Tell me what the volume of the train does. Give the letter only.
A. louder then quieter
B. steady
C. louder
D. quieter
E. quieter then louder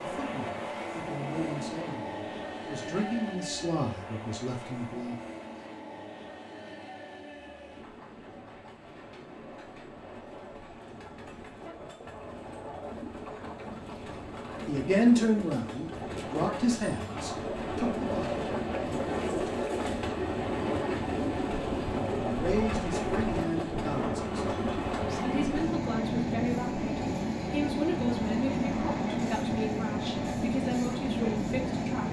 E.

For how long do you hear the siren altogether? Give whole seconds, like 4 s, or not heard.
not heard.